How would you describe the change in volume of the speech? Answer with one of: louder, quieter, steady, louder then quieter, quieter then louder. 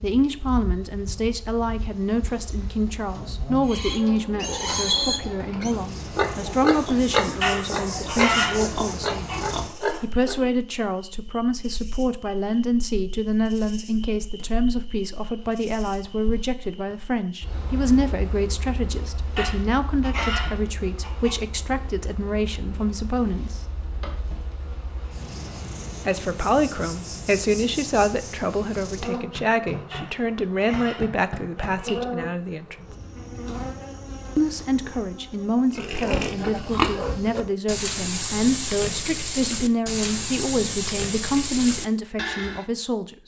steady.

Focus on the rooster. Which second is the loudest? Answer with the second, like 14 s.
8 s.